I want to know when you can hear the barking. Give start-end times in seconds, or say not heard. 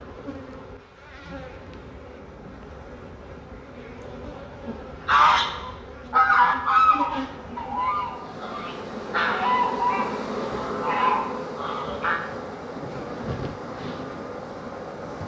not heard.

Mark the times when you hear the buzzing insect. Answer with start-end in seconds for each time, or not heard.
0.0-15.2.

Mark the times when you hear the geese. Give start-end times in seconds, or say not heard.
5.0-12.2.